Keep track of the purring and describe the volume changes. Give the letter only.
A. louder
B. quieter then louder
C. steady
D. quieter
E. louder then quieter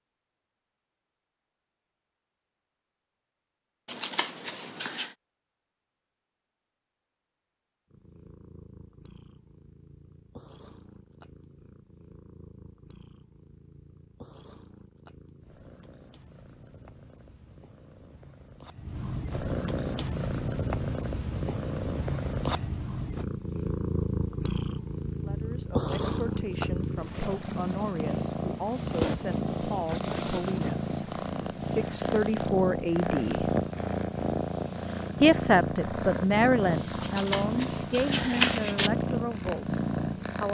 A.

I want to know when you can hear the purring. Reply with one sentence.
You can hear the purring from 7.9 to 40.4 s.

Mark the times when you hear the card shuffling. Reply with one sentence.
You can hear the card shuffling from 3.9 to 5.2 s and from 37.0 to 38.9 s.